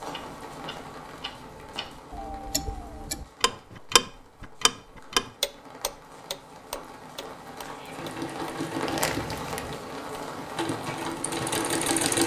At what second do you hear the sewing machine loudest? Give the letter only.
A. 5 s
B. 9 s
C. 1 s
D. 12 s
D.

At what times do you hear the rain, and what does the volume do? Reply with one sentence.
You can hear the rain from 0.0 to 12.2 s, getting quieter then louder.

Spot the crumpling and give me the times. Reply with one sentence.
You can hear the crumpling from 8.8 to 9.8 s.